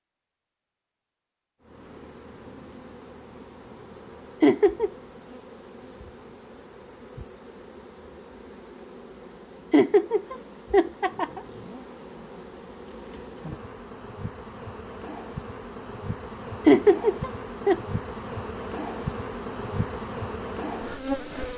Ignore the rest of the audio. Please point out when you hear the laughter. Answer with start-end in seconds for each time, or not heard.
4.4-4.9, 9.7-11.4, 16.6-17.8.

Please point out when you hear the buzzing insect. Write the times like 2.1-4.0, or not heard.
1.6-21.5.